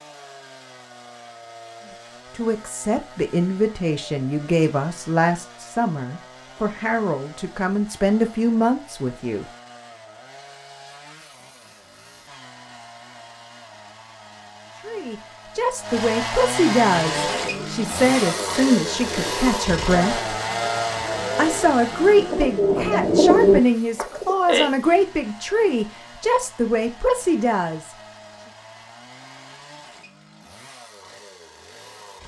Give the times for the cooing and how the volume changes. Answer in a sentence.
You can hear the cooing from 17.0 to 24.7 s, getting louder.